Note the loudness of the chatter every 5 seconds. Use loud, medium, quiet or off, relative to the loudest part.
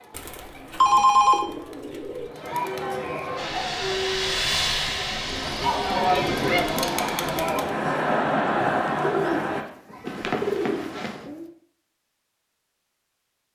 medium, loud, off.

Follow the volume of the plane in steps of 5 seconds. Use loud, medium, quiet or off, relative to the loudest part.
loud, medium, off.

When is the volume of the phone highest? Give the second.
1 s.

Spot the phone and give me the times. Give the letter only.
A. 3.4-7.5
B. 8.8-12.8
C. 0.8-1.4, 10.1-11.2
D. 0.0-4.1
C.